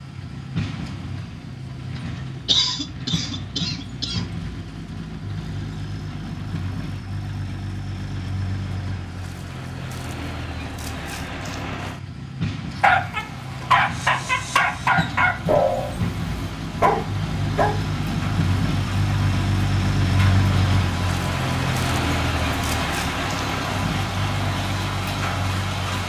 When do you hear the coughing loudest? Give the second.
3 s.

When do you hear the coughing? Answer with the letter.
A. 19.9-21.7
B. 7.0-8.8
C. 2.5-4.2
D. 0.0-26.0
C.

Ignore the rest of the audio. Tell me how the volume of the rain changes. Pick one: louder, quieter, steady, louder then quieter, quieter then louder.
louder.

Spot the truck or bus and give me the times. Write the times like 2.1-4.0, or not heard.
0.0-26.0.